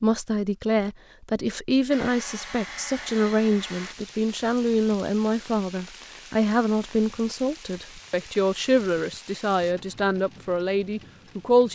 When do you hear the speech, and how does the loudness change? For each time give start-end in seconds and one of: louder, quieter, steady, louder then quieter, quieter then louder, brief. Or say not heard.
0.0-11.7 steady.